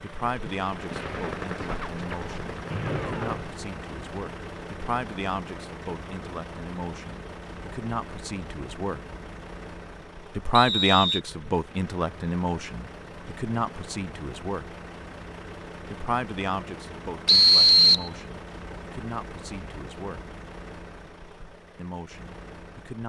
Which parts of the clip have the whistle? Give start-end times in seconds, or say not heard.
2.7-3.6, 10.5-11.2, 17.2-18.1.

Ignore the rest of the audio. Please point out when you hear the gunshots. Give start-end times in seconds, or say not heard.
0.9-3.5.